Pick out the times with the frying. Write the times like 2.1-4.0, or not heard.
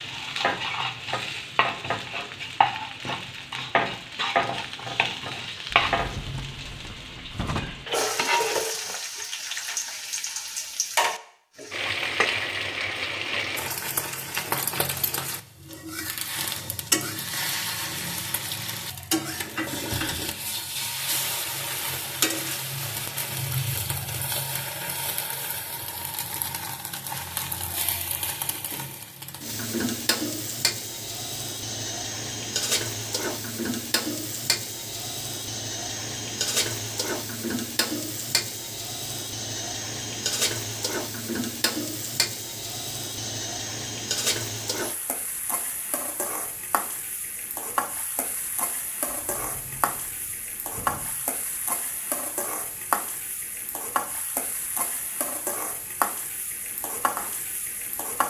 0.0-58.2.